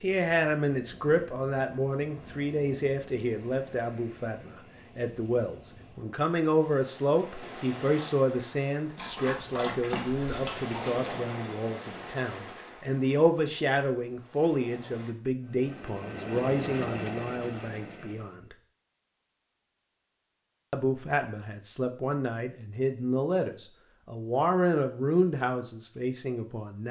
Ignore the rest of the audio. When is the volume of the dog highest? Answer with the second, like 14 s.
10 s.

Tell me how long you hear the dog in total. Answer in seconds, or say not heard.
2 s.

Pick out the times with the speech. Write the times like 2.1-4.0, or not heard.
0.0-18.6, 20.7-26.8.